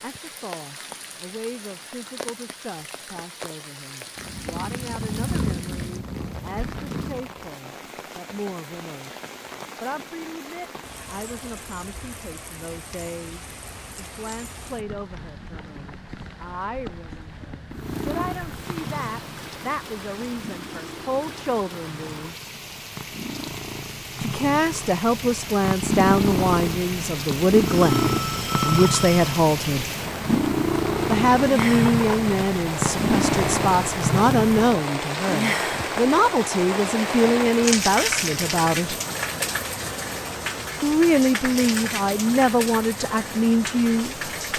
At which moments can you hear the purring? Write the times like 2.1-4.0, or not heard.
4.2-7.3, 17.7-34.9.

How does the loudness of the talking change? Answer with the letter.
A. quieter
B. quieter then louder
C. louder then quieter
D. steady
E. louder
E.